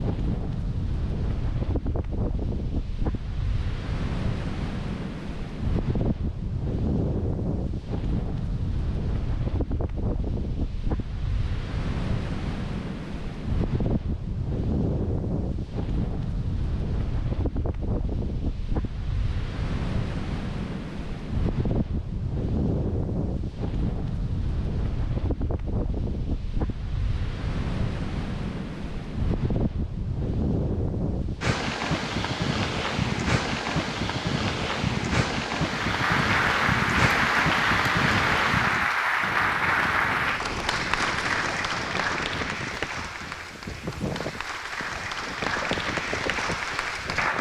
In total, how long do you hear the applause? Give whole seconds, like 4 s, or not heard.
12 s.